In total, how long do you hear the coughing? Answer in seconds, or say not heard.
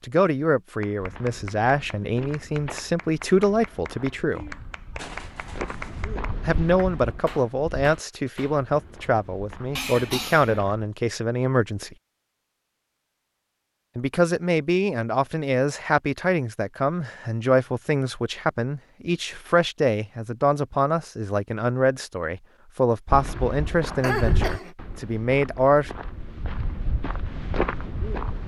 3 s.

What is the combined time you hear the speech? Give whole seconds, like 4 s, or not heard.
22 s.